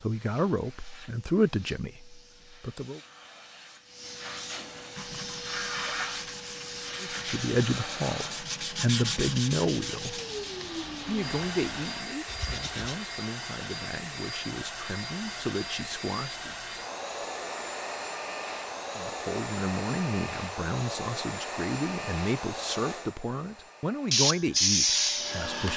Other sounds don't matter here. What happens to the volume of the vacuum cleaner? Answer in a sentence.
The loudness of the vacuum cleaner goes up.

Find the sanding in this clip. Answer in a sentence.
You can hear the sanding from 4.9 to 13.0 s and from 24.1 to 25.7 s.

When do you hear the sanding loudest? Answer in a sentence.
The volume of the sanding peaks at 25 seconds.